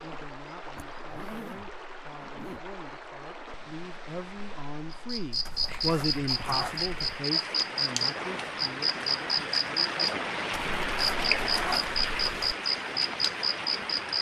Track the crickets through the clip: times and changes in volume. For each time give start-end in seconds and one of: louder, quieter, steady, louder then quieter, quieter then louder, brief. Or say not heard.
4.9-14.1 steady.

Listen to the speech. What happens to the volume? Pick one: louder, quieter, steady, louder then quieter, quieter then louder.
louder then quieter.